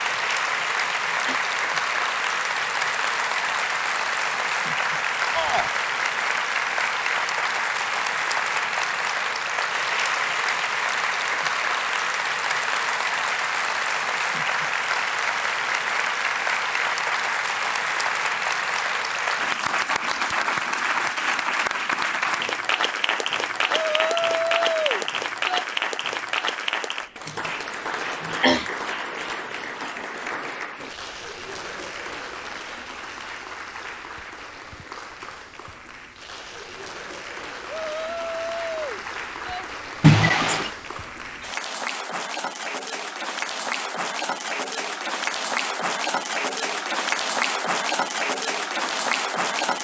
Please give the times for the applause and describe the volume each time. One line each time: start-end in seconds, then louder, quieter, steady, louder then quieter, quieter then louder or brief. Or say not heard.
0.0-49.7 quieter then louder.